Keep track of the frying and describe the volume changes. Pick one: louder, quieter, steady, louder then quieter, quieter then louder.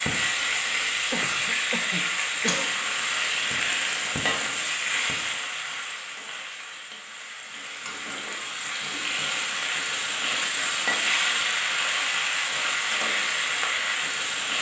quieter then louder.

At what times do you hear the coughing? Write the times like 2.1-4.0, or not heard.
1.1-2.7.